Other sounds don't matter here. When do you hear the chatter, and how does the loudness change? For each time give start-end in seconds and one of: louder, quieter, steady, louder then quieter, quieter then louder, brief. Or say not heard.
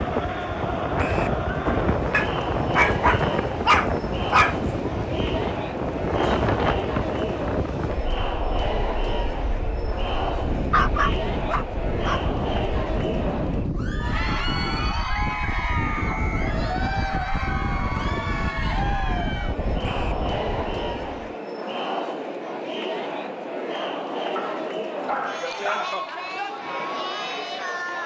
0.0-28.0 steady.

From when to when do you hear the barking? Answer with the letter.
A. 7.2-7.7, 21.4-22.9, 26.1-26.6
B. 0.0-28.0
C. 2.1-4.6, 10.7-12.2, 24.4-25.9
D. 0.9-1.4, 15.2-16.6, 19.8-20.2
C.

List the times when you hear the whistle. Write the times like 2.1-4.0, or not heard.
0.9-1.4, 15.2-16.6, 19.8-20.2.